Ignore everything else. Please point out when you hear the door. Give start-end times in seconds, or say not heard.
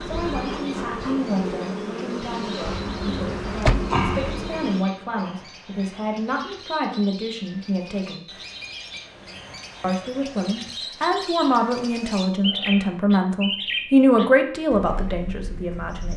2.6-4.0.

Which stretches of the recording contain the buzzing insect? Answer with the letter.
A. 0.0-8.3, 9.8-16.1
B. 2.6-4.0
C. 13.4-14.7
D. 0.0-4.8
D.